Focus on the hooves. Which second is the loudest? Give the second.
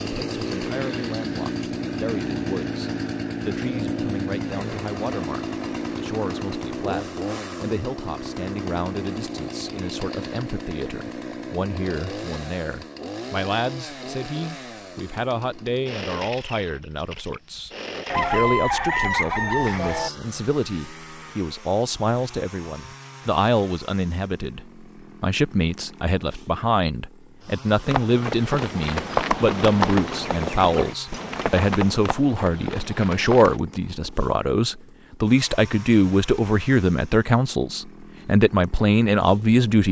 29 s.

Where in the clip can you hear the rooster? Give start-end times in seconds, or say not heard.
18.1-20.1.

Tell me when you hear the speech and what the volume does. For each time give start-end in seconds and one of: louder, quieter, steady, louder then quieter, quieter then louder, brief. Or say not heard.
0.0-39.8 louder.